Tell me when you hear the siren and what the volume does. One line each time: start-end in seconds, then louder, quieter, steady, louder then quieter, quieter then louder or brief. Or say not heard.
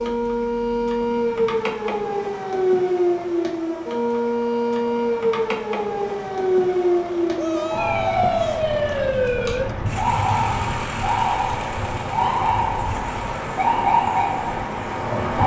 0.0-15.4 steady.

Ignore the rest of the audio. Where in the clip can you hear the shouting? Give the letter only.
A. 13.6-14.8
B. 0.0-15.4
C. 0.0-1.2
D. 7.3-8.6
D.